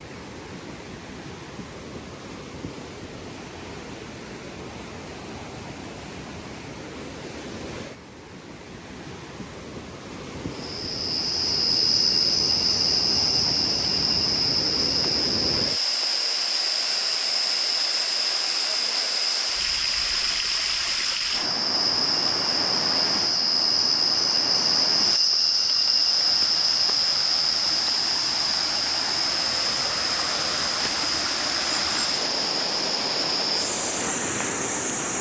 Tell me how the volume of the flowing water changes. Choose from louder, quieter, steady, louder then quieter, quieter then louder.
louder.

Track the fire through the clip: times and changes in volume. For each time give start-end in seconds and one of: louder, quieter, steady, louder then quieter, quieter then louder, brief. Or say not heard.
not heard.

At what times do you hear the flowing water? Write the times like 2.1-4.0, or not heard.
0.0-35.1.